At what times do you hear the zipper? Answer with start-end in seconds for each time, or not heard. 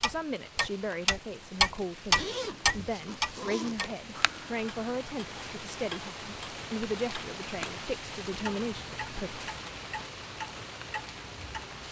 2.1-4.0.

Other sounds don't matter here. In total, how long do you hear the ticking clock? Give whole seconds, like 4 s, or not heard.
12 s.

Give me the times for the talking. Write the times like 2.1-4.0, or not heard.
0.0-9.4.